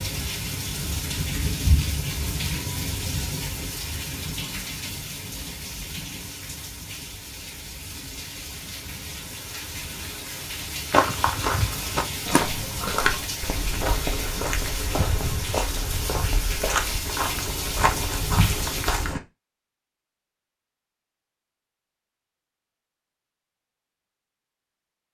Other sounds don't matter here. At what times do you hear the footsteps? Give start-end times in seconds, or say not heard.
10.9-19.2.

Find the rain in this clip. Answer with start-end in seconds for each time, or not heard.
0.0-19.1.